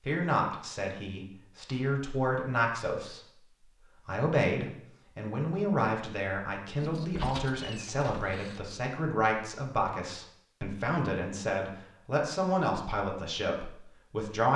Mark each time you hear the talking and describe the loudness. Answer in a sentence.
You can hear the talking from 0.0 to 14.5 s, at a steady volume.